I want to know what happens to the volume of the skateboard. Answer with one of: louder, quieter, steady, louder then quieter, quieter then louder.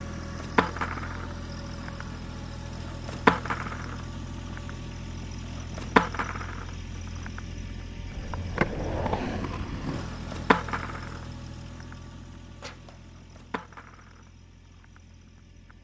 quieter.